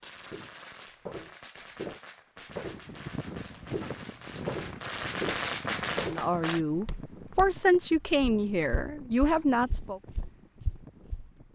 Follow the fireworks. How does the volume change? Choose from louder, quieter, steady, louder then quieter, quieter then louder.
louder.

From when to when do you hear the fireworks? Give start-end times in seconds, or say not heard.
0.0-6.6.